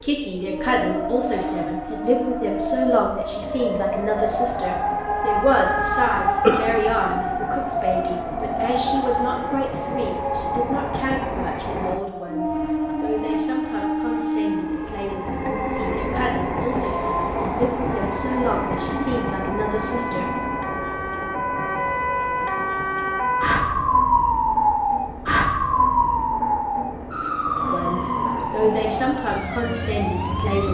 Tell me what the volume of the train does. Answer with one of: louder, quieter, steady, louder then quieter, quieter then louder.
louder then quieter.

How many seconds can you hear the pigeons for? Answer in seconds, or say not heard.
not heard.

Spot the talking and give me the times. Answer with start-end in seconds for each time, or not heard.
0.0-20.3, 27.6-30.6.